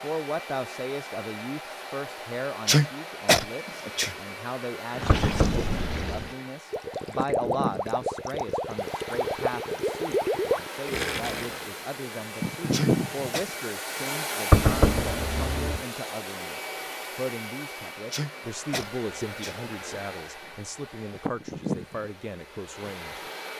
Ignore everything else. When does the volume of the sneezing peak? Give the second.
3 s.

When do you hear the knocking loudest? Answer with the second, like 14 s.
15 s.